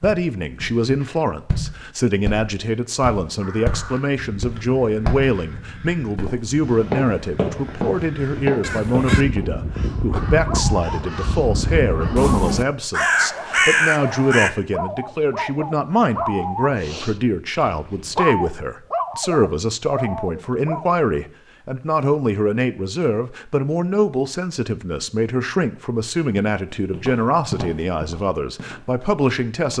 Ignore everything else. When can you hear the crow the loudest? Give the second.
14 s.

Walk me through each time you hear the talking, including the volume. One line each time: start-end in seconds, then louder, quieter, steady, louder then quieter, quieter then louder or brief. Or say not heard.
0.0-29.7 steady.